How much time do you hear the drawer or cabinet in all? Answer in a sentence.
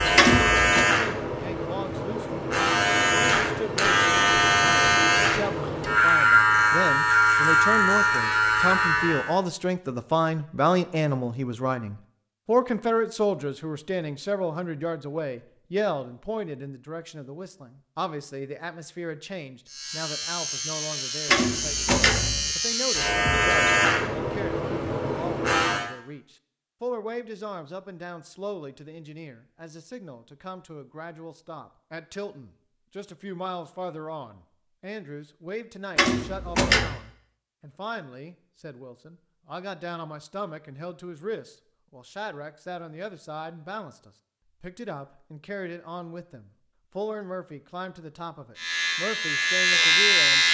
You can hear the drawer or cabinet for 3 seconds altogether.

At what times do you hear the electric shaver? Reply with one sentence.
The electric shaver can be heard from 0.0 to 9.3 s, from 19.6 to 25.9 s and from 48.5 to 50.4 s.